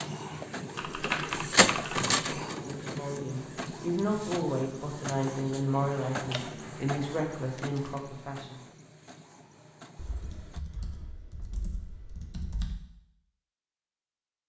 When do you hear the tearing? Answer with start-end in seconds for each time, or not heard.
not heard.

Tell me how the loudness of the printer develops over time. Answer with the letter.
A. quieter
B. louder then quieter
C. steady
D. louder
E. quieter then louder
A.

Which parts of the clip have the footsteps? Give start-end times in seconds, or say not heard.
not heard.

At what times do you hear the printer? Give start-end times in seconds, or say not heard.
0.0-10.6.